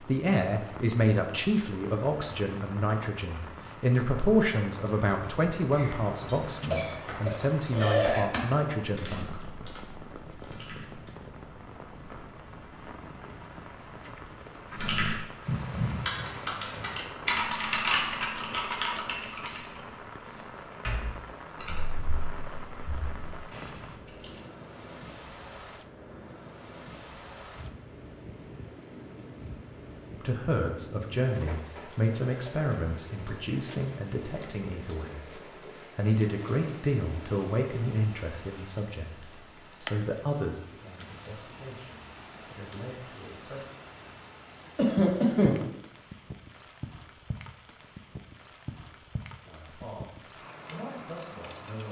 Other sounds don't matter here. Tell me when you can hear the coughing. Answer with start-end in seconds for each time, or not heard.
5.7-8.2, 44.8-45.5.